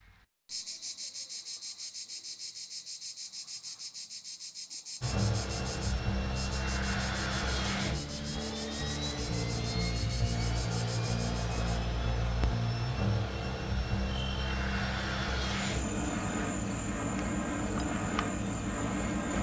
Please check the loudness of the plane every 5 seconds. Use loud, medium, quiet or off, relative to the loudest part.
off, loud, loud, loud.